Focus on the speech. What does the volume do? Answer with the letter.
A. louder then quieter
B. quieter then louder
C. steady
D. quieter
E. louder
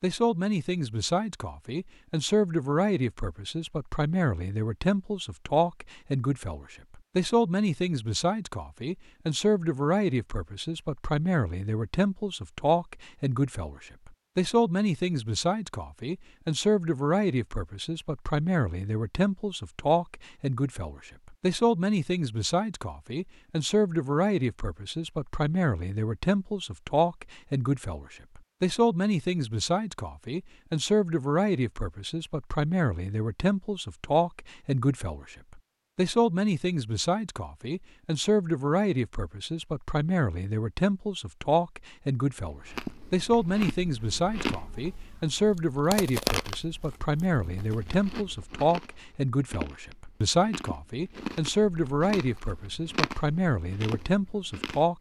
C.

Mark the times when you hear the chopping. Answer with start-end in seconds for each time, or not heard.
not heard.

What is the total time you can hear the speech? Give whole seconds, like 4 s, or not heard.
55 s.